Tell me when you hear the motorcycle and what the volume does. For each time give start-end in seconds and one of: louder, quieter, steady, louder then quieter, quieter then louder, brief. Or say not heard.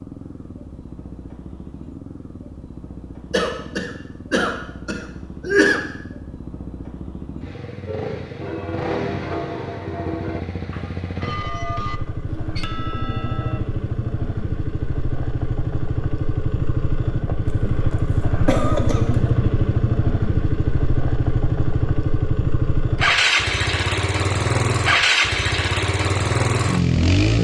0.0-27.3 louder.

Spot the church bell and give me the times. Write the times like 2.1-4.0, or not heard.
7.8-13.6.